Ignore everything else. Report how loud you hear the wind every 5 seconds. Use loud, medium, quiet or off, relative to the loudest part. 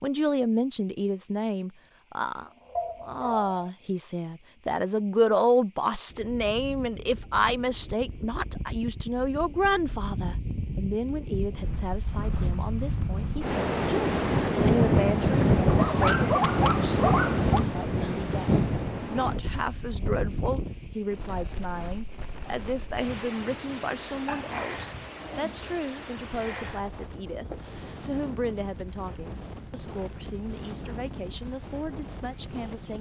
off, quiet, loud, loud, quiet, quiet, quiet.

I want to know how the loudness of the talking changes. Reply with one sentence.
The volume of the talking goes down.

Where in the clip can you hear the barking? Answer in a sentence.
You can hear the barking from 2.8 to 3.7 s, from 15.7 to 17.6 s and from 24.2 to 25.7 s.